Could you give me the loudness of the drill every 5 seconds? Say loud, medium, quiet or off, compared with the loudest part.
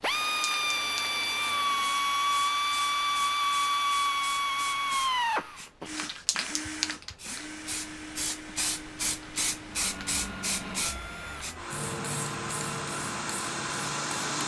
loud, medium, medium.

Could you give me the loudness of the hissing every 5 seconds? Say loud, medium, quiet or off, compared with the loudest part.
medium, loud, loud.